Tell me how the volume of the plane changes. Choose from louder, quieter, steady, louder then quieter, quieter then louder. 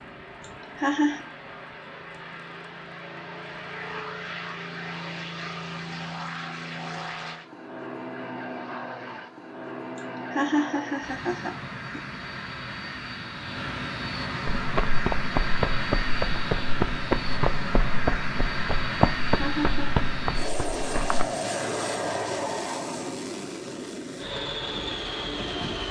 louder.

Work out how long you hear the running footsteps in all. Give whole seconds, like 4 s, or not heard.
7 s.